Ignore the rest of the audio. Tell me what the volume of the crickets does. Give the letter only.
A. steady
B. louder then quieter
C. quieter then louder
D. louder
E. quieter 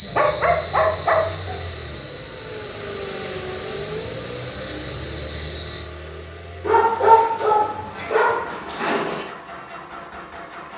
C.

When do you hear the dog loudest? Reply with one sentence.
The volume of the dog peaks at 7 seconds.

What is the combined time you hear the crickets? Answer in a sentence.
You can hear the crickets for 6 seconds altogether.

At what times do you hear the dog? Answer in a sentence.
The dog can be heard from 0.0 to 1.6 s and from 6.6 to 9.2 s.